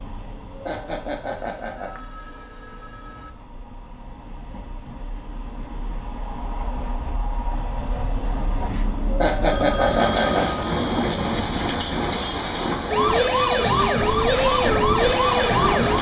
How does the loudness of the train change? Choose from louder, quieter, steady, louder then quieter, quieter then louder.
louder.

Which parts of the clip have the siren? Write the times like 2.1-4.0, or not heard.
12.9-15.9.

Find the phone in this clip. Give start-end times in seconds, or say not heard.
1.4-3.3, 9.5-11.4.